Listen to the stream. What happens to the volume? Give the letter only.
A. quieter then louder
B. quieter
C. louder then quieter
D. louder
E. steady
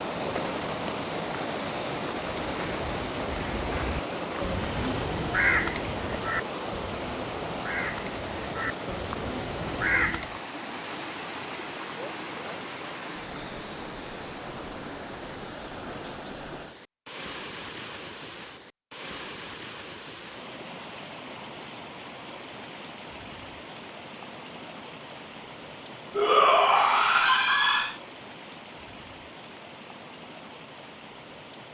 B.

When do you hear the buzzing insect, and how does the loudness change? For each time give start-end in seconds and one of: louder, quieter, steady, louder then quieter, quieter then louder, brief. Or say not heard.
not heard.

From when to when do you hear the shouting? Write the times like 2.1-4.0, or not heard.
26.1-27.9.